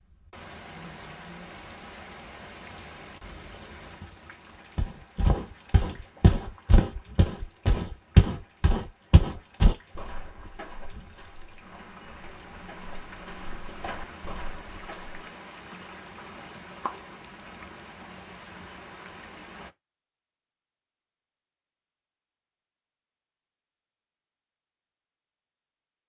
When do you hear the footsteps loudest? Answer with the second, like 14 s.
8 s.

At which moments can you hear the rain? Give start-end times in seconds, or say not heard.
0.0-19.8.